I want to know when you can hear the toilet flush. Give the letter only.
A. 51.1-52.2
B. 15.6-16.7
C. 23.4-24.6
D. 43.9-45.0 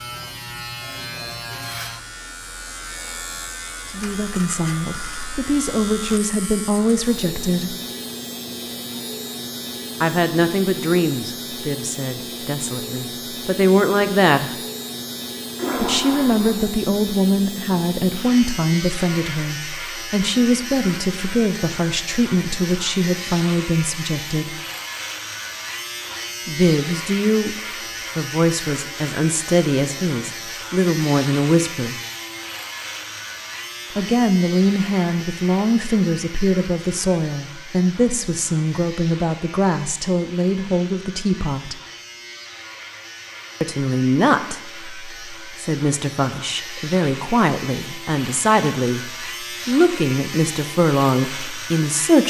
B.